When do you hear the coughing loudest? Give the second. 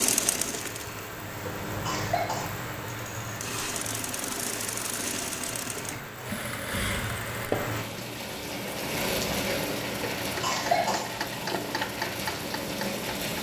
11 s.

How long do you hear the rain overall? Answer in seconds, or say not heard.
13 s.